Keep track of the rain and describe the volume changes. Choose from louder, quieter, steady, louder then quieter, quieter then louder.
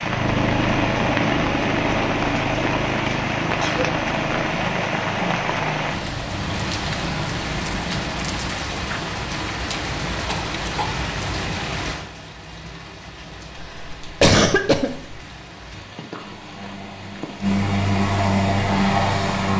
quieter.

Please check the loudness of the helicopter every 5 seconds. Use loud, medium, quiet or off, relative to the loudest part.
loud, medium, off, loud.